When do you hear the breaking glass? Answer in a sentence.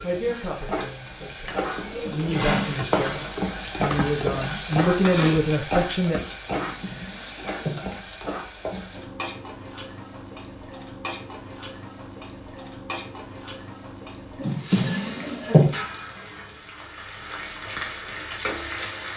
You can't hear the breaking glass here.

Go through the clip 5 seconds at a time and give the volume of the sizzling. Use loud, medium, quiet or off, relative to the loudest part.
loud, loud, medium, medium.